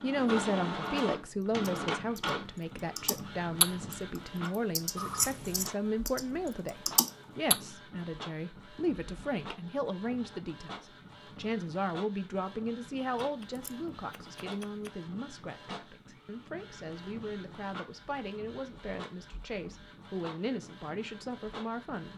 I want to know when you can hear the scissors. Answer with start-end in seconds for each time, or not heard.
5.0-5.7, 13.2-14.9.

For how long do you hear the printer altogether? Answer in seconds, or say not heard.
22 s.